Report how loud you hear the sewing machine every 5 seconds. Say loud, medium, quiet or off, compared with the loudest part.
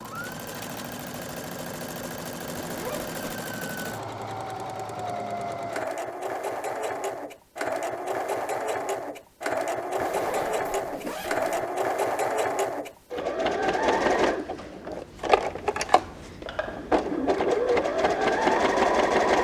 medium, medium, loud, loud.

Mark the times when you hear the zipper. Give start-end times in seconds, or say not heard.
2.5-3.1, 10.0-11.7.